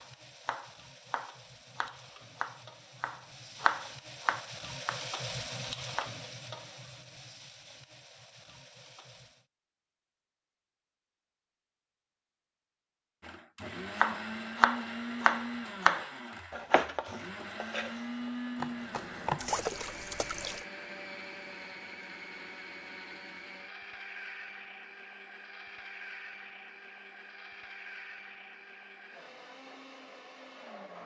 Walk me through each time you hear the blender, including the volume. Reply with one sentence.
You can hear the blender from 13.2 to 31.0 s, getting quieter.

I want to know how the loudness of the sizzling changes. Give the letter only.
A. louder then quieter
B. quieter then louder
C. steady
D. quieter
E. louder
A.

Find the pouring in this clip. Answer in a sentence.
You can hear the pouring from 19.4 to 20.6 s.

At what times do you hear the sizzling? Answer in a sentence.
You can hear the sizzling from 0.0 to 9.4 s.